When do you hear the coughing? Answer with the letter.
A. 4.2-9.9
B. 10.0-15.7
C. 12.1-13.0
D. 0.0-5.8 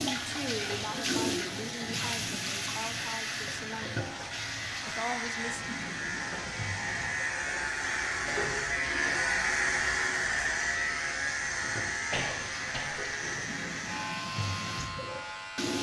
C.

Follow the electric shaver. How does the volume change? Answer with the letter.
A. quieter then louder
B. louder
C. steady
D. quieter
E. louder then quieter
E.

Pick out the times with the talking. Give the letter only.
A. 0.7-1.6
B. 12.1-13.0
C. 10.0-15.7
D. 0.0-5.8
D.